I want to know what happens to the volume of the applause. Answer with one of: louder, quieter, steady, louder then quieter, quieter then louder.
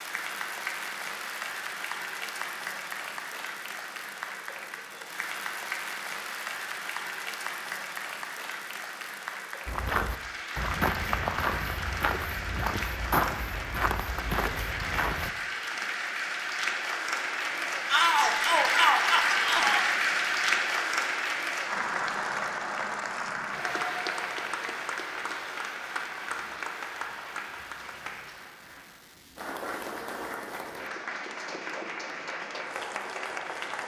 louder then quieter.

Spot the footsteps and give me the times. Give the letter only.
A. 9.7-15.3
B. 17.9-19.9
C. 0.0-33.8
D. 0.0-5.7
A.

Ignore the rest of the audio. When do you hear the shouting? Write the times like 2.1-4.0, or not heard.
17.9-19.9.